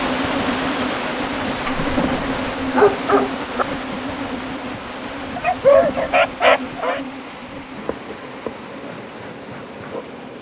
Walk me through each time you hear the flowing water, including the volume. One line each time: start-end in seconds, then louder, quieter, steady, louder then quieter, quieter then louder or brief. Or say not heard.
0.0-10.3 quieter.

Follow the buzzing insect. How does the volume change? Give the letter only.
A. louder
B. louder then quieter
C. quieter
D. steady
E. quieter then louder
C.